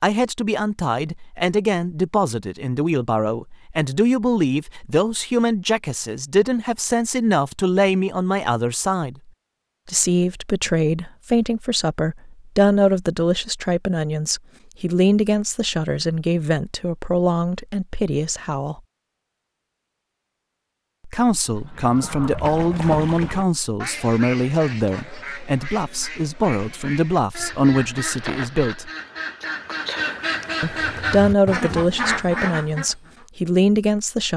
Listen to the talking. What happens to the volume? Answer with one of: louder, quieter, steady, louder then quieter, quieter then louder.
steady.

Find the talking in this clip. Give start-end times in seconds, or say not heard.
0.0-9.2, 9.8-18.8, 21.1-28.9, 30.6-34.3.